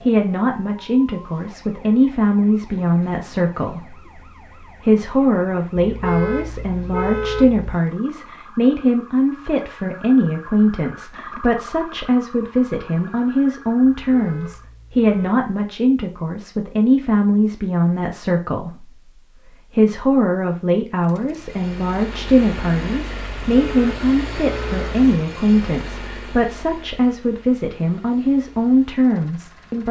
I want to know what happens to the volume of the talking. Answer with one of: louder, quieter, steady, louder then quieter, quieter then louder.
steady.